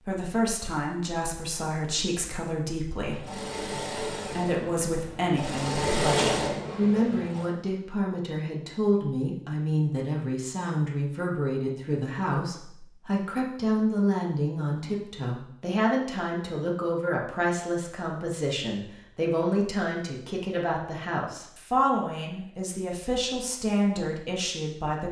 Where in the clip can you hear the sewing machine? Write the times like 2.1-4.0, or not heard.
3.0-7.5.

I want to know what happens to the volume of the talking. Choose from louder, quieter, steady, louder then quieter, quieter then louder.
steady.